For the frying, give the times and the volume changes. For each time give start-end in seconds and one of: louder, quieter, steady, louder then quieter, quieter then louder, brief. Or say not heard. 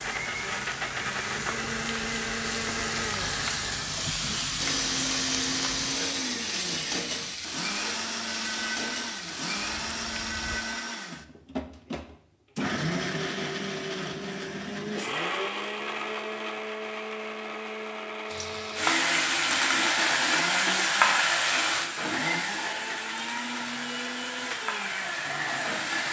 0.0-10.6 louder then quieter
18.3-26.0 quieter.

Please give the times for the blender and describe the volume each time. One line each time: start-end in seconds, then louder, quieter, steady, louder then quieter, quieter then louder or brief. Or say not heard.
0.0-26.0 steady.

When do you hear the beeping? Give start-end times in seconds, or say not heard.
not heard.